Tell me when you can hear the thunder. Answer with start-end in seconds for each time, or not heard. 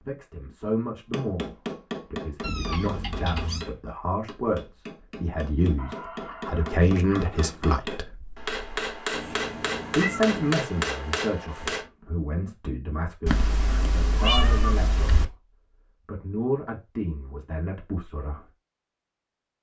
not heard.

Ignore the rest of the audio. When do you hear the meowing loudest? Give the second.
14 s.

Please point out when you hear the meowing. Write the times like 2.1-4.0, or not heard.
2.4-3.6, 9.1-10.6, 13.2-15.2.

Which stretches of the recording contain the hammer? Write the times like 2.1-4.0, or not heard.
1.1-11.8.